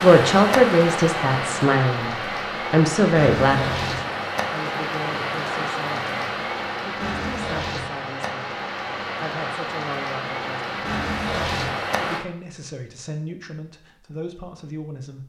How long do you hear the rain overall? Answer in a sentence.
You can hear the rain for 12 seconds altogether.